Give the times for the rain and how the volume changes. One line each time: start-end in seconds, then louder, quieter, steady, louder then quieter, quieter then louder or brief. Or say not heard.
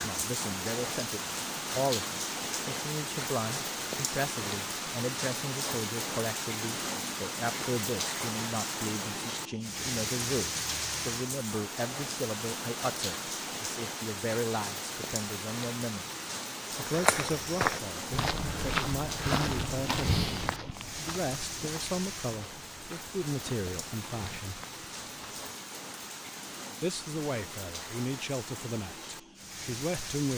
0.0-30.3 quieter.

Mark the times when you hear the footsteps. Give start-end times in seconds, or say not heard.
16.9-25.4.